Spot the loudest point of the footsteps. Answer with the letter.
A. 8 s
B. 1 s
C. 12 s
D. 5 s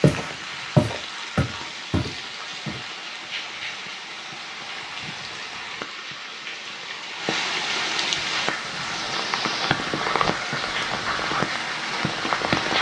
B.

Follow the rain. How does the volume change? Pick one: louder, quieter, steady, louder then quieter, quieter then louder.
louder.